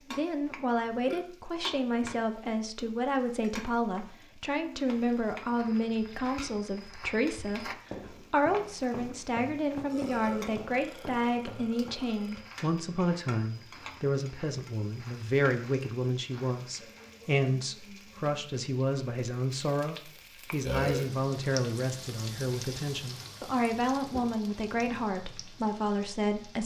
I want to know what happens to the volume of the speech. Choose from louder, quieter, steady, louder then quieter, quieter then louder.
steady.